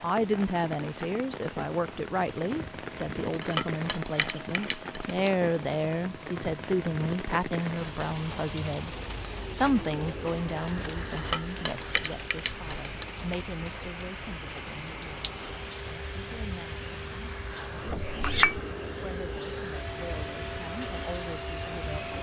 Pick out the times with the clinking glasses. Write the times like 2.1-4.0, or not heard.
3.4-5.3, 11.2-13.1, 18.1-18.6.